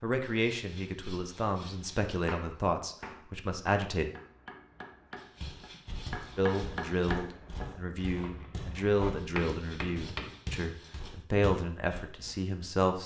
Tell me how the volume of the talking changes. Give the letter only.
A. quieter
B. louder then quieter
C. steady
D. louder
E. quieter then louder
C.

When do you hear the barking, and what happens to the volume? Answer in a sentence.
You can't hear the barking here.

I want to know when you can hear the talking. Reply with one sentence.
You can hear the talking from 0.0 to 4.0 s and from 6.3 to 13.0 s.